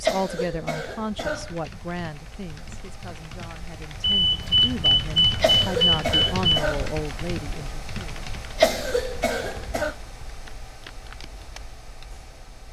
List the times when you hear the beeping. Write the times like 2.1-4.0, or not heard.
4.0-6.5.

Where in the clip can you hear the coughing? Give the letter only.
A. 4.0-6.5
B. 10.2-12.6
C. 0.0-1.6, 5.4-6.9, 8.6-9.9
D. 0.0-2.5
C.